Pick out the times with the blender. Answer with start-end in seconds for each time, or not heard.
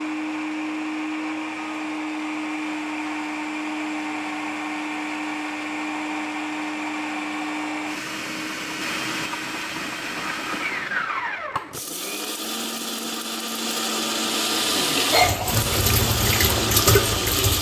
0.0-17.5.